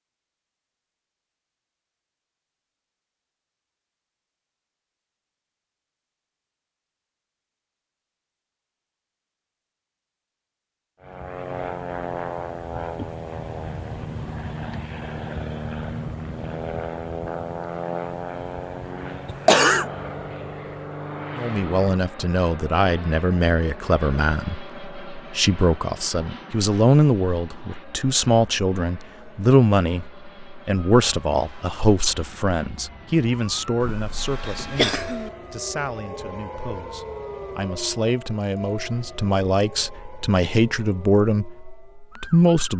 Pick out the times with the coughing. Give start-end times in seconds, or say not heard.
19.2-19.9, 33.8-35.3.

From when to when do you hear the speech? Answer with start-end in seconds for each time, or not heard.
21.4-42.7.